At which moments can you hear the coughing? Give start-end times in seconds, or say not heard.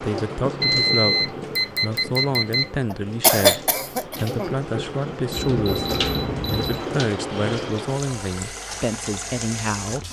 2.9-4.5.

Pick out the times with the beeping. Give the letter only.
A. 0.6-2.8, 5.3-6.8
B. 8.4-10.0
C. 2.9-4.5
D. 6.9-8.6
A.